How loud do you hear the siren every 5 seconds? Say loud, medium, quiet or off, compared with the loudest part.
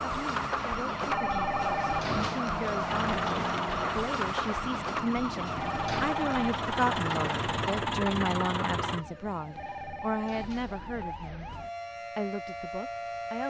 loud, medium, medium.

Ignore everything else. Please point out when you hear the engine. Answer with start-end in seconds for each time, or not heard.
2.9-9.1.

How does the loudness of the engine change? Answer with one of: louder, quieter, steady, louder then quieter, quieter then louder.
quieter then louder.